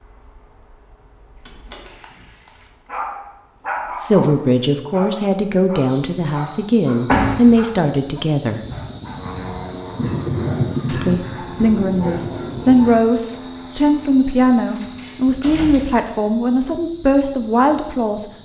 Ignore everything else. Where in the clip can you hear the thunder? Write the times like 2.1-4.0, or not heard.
8.7-13.1.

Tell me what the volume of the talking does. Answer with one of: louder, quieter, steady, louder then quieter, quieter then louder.
steady.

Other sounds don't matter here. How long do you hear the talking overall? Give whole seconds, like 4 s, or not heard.
12 s.